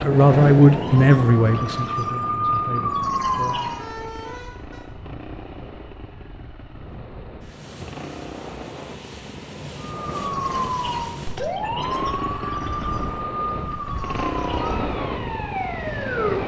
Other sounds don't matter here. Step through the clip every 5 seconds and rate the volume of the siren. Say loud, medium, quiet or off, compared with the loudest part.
loud, off, loud, loud.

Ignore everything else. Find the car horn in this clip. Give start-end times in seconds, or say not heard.
3.2-4.8.